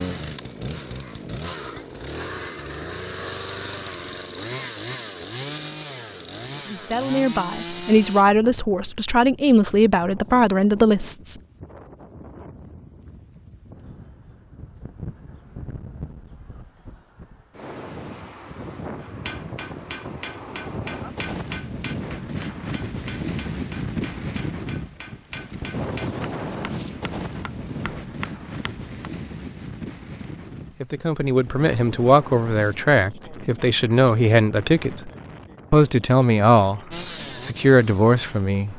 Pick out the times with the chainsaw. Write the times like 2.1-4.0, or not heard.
0.0-8.2, 36.9-38.7.